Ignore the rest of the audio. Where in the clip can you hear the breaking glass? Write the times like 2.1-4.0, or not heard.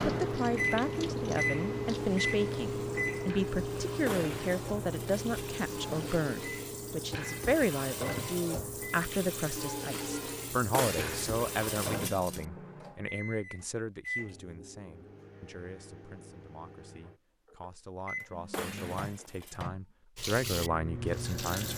4.0-5.3, 10.7-12.4, 18.5-19.6.